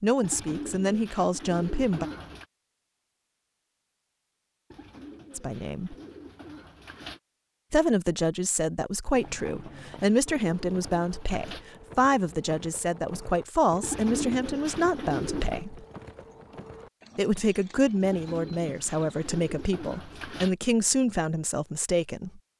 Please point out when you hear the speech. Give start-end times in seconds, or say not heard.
0.0-2.0, 5.3-6.0, 7.7-15.8, 17.1-22.4.